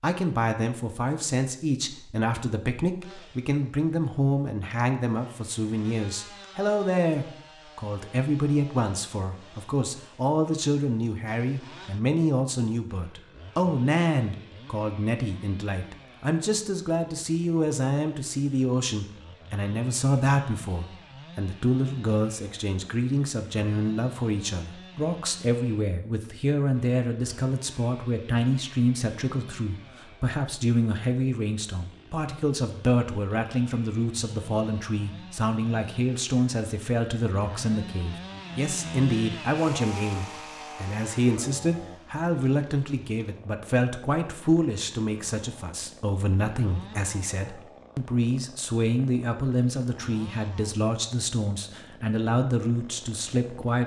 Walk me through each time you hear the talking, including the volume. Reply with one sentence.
The talking can be heard from 0.0 to 53.8 s, at a steady volume.